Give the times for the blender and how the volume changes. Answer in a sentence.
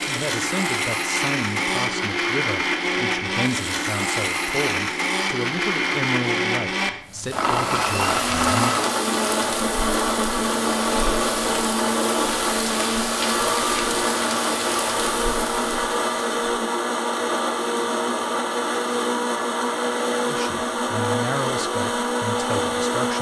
You can hear the blender from 0.0 to 23.1 s, at a steady volume.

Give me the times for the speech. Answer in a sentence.
The speech can be heard from 0.1 to 8.8 s and from 20.2 to 23.1 s.